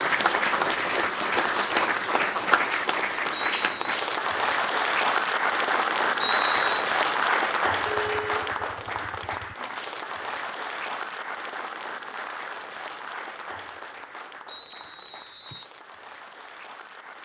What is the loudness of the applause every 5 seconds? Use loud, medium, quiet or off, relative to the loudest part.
loud, loud, medium, quiet.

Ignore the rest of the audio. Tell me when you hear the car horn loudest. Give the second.
8 s.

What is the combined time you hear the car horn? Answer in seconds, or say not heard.
2 s.